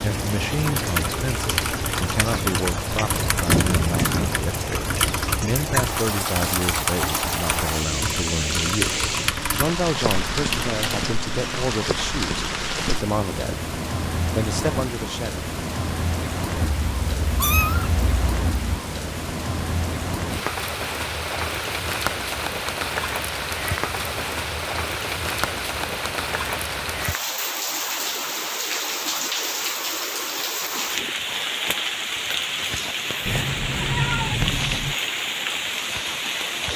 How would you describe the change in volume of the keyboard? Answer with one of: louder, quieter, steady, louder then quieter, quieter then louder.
steady.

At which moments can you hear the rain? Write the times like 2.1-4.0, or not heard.
0.0-36.7.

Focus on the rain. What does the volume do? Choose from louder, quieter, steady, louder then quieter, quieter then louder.
steady.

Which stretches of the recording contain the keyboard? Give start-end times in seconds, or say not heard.
0.6-11.7.